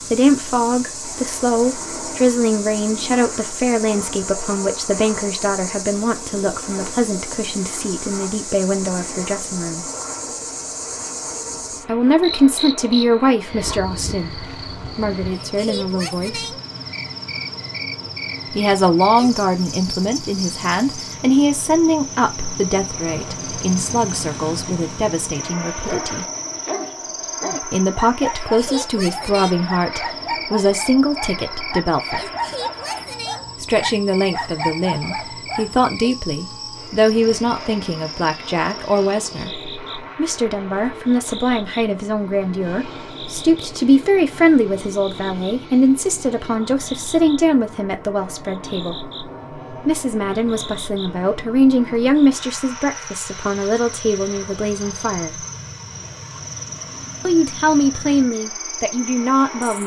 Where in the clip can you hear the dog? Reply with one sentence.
The dog can be heard from 25.8 to 35.9 s.